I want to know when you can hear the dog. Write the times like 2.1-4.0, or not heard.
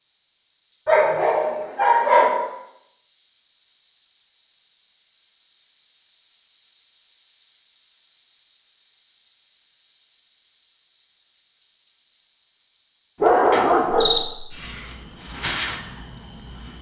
0.8-2.4, 13.2-14.2.